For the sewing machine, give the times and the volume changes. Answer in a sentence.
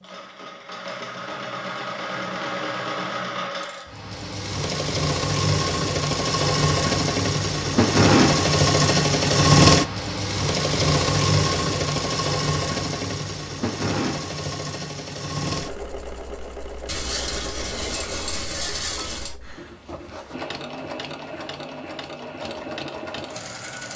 You can hear the sewing machine from 0.0 to 23.9 s, getting louder then quieter.